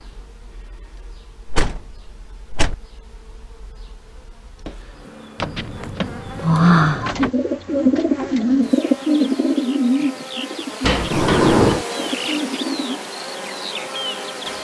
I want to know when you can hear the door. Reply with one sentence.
The door can be heard from 1.4 to 2.8 s, from 5.4 to 7.3 s and from 10.8 to 11.8 s.